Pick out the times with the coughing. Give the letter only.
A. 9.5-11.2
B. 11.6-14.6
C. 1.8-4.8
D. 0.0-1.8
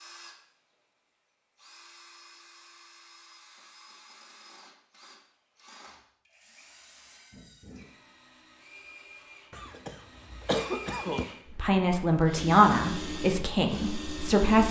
A.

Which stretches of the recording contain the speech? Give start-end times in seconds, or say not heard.
11.6-14.6.